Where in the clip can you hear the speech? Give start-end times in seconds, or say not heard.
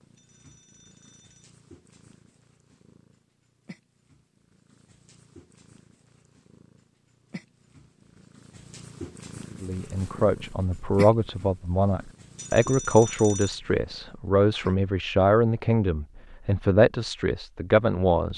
9.6-18.3.